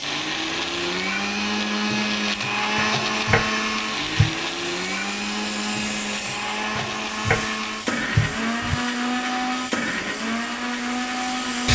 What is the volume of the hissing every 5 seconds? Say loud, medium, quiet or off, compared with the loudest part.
medium, medium, loud.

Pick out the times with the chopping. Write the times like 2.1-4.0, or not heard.
2.8-4.3, 6.8-8.8.